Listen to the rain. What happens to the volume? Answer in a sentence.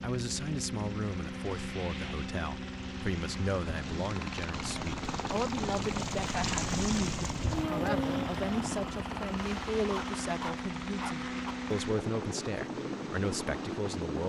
The loudness of the rain goes up, then down.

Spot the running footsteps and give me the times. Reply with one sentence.
The running footsteps can't be heard in this clip.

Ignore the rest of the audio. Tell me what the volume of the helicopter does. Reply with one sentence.
The volume of the helicopter stays about the same.